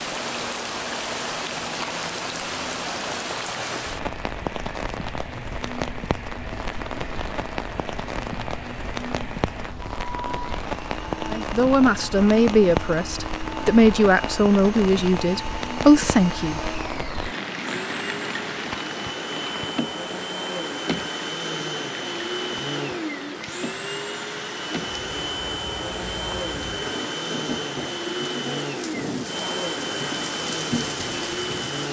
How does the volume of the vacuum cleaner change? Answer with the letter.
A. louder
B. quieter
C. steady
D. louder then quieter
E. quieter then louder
A.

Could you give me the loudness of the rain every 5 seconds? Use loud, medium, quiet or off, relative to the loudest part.
loud, loud, loud, loud, medium, medium, loud.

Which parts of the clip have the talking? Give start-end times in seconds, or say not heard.
11.2-16.6.